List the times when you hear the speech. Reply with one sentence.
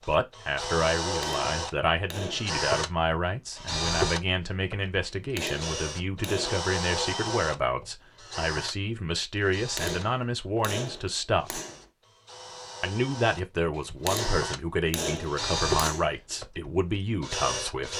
The speech can be heard from 0.1 to 11.6 s and from 12.8 to 17.9 s.